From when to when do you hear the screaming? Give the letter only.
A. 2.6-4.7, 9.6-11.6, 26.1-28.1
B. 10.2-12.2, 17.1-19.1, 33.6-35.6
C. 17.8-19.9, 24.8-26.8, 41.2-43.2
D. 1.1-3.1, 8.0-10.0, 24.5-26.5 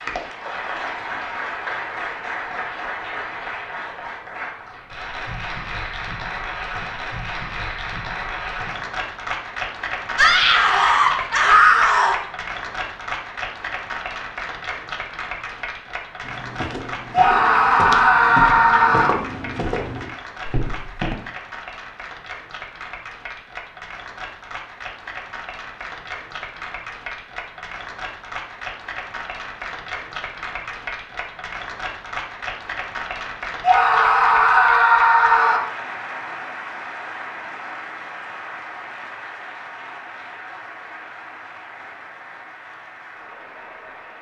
B.